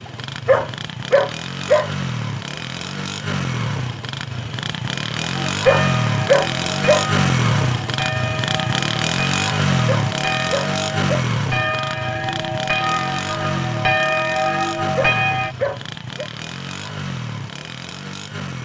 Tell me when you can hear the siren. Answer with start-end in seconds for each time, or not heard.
not heard.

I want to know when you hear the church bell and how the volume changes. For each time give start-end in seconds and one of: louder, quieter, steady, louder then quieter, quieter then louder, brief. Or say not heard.
5.3-15.6 louder.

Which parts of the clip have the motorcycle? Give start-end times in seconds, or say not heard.
0.0-18.6.